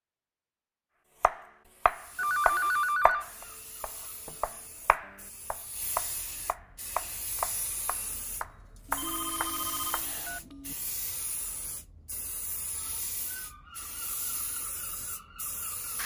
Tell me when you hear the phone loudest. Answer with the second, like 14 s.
3 s.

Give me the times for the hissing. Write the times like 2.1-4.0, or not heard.
1.8-16.0.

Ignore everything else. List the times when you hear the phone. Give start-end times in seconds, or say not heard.
2.1-3.2, 8.8-10.8.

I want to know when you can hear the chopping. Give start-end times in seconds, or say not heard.
1.2-10.2.